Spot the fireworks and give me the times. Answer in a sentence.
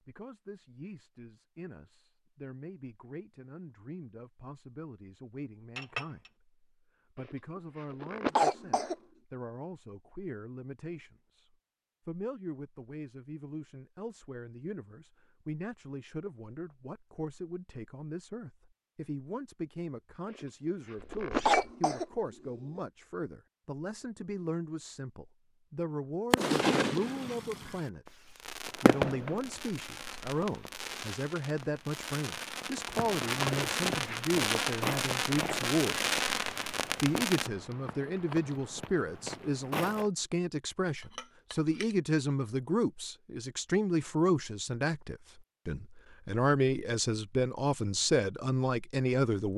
The fireworks can be heard from 26.3 to 37.5 s.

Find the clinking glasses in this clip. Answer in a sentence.
The clinking glasses can be heard from 5.8 to 6.3 s, from 21.1 to 21.7 s and from 41.0 to 42.0 s.